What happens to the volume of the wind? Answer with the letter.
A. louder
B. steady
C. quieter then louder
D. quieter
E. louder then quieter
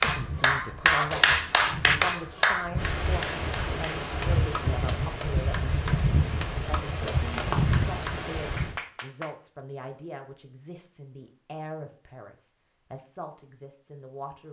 A.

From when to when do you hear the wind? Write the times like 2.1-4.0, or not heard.
0.0-8.8.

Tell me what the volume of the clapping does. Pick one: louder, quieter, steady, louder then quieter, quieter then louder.
quieter.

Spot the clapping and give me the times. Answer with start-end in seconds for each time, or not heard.
0.0-9.3.